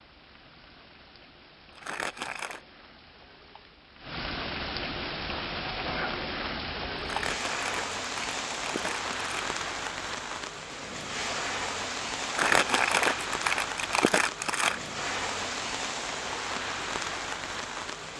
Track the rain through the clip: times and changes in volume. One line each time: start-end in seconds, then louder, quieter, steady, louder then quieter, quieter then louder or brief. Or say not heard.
0.0-18.1 louder.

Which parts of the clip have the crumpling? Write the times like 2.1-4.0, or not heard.
1.8-2.6, 7.0-9.6, 12.2-14.8.